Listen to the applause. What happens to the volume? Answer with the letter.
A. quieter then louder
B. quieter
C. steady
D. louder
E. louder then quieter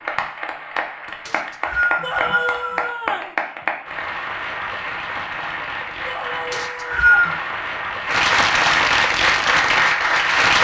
D.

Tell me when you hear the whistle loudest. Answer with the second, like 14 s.
7 s.